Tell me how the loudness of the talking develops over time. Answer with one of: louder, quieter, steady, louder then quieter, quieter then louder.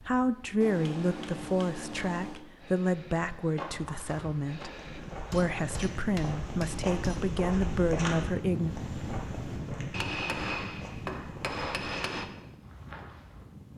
quieter then louder.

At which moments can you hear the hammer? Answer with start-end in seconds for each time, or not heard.
0.6-2.5, 5.3-7.4, 9.9-12.3.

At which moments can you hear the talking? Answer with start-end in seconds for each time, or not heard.
0.0-8.8.